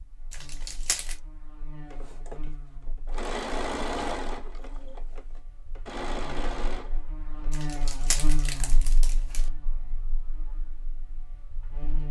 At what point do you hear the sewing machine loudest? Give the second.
4 s.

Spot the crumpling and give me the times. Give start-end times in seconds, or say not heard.
0.3-1.1, 7.5-9.4.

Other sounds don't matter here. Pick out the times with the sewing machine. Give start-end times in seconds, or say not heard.
1.9-8.0.